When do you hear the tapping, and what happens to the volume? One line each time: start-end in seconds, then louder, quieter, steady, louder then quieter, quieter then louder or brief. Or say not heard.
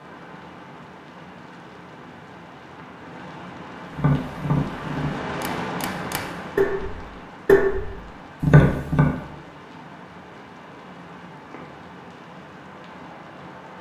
3.9-9.2 quieter then louder.